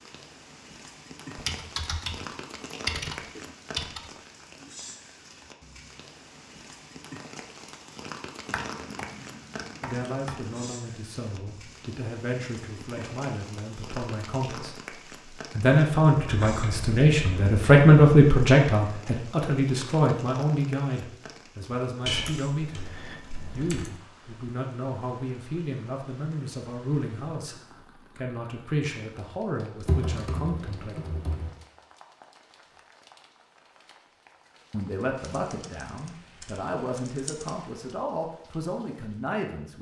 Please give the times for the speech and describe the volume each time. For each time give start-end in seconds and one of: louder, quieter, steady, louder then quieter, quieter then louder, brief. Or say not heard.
9.8-30.9 louder then quieter
34.7-39.7 steady.